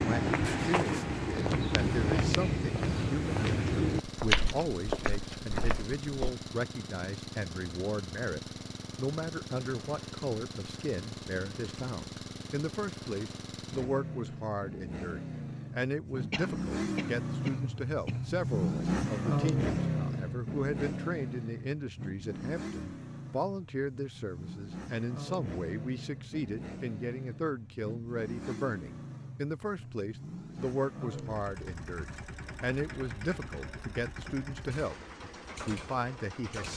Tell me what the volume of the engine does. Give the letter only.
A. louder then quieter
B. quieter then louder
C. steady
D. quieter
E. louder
A.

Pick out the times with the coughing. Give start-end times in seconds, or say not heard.
16.3-18.3.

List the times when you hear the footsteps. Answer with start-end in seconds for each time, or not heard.
0.0-6.3.